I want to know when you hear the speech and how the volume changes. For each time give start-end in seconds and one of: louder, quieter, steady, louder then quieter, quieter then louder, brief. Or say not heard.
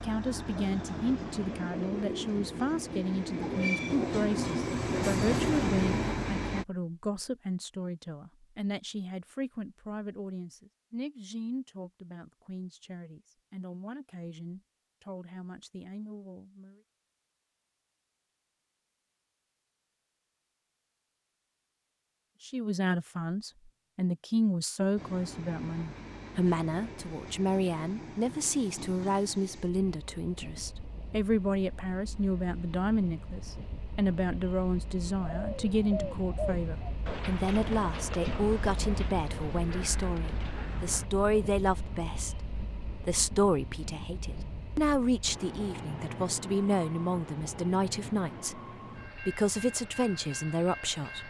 0.0-16.8 quieter
22.4-51.2 steady.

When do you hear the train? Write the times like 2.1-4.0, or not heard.
0.0-6.7, 24.9-51.2.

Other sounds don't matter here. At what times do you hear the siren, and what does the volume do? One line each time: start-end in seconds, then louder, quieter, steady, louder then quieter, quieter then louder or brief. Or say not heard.
not heard.